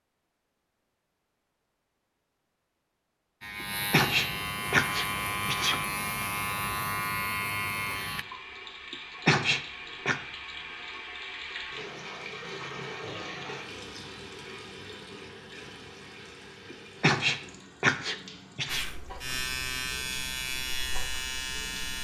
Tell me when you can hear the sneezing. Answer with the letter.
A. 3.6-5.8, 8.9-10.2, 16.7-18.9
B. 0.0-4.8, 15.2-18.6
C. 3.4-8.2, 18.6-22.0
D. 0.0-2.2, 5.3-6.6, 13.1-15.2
A.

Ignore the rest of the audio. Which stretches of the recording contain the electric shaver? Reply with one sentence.
The electric shaver can be heard from 3.4 to 8.2 s and from 18.6 to 22.0 s.